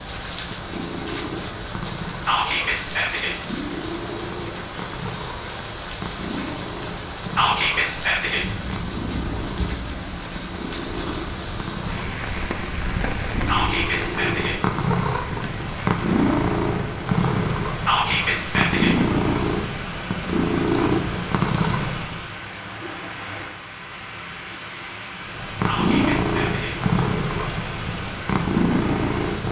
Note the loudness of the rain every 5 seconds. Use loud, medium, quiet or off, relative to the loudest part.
loud, loud, loud, medium, medium, medium.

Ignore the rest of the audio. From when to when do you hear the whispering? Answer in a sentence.
The whispering can be heard from 2.2 to 3.4 s, from 7.3 to 8.4 s, from 13.4 to 14.6 s, from 17.9 to 18.9 s and from 25.6 to 26.8 s.